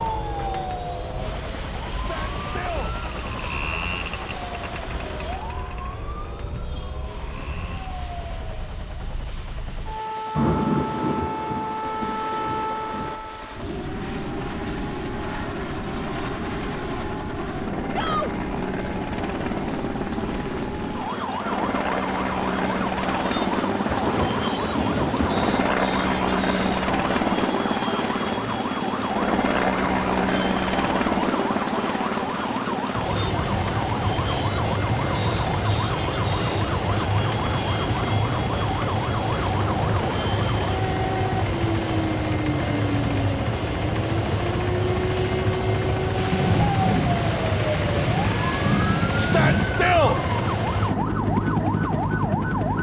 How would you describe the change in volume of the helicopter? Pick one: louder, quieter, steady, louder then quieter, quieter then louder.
louder.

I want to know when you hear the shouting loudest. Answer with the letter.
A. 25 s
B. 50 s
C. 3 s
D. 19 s
B.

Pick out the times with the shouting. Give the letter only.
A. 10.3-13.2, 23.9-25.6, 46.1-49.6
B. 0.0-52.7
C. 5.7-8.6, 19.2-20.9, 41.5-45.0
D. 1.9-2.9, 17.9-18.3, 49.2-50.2
D.